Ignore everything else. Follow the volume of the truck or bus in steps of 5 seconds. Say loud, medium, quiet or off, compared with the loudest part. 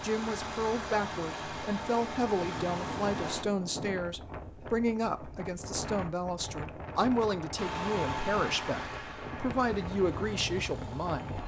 loud, loud, medium.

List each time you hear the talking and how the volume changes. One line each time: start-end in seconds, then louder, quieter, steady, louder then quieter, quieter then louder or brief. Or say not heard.
0.0-11.4 steady.